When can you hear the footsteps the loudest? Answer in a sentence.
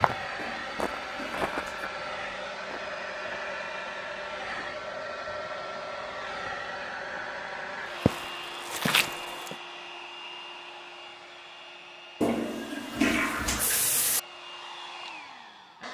The loudest moment of the footsteps is at 9 seconds.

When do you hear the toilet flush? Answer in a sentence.
You can hear the toilet flush from 0.3 to 1.9 s and from 12.2 to 14.2 s.